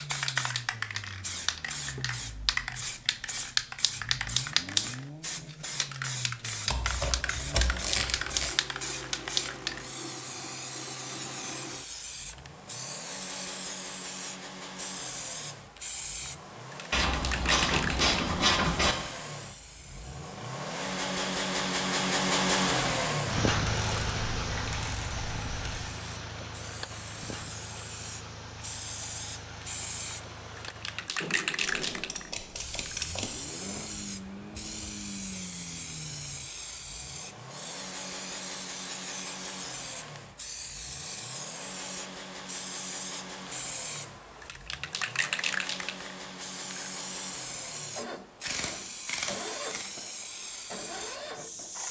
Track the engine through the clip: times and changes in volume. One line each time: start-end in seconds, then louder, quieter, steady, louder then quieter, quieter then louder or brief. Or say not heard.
0.0-51.8 louder then quieter.